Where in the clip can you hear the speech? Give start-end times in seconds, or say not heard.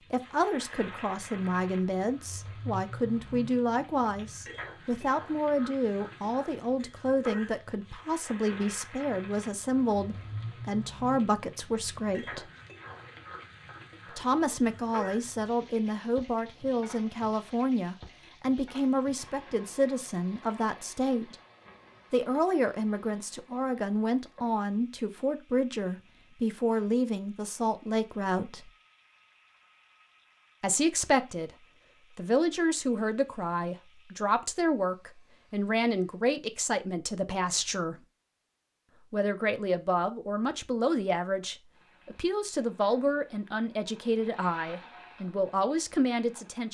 0.1-12.5, 14.1-21.4, 22.1-28.7, 30.6-38.0, 39.1-46.6.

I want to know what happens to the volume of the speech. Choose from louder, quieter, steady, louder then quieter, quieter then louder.
steady.